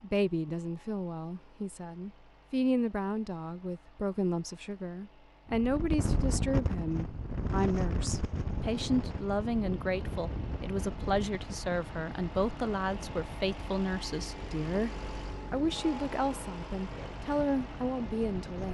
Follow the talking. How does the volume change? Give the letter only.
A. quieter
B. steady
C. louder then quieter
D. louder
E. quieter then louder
B.